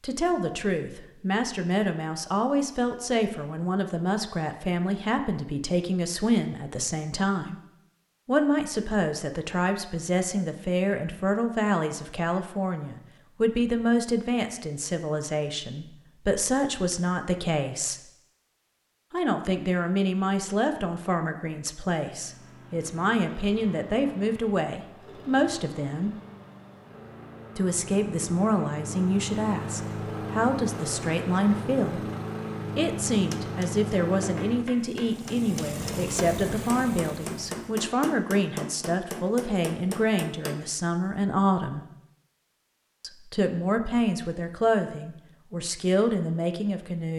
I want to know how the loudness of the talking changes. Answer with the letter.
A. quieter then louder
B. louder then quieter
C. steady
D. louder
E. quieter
C.